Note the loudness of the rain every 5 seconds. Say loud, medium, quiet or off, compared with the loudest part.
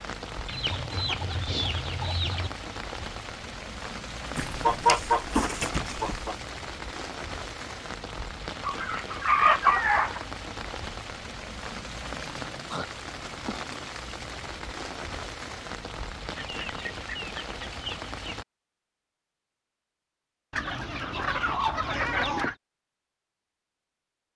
loud, loud, loud, loud, off.